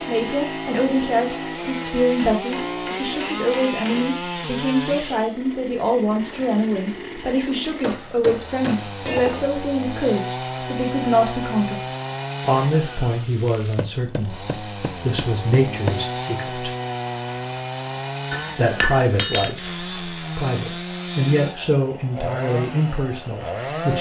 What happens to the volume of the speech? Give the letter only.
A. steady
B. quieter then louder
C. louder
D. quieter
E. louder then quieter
A.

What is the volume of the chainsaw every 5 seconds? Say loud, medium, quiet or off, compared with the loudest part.
loud, medium, loud, loud, loud.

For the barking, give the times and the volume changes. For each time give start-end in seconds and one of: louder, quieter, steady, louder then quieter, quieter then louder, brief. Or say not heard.
not heard.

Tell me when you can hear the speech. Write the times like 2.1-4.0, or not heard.
0.1-16.7, 18.6-23.9.